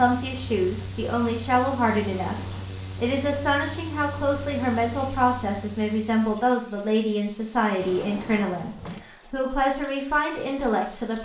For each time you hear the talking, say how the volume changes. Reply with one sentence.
The talking can be heard from 0.0 to 11.2 s, at a steady volume.